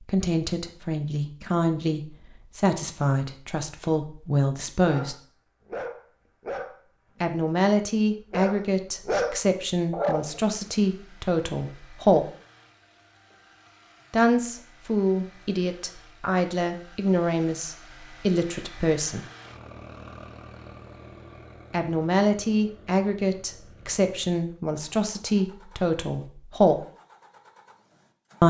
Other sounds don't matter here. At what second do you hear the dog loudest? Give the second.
9 s.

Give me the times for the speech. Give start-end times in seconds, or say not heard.
0.0-5.2, 7.2-12.2, 14.1-19.2, 21.7-26.8.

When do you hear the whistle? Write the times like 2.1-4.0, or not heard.
not heard.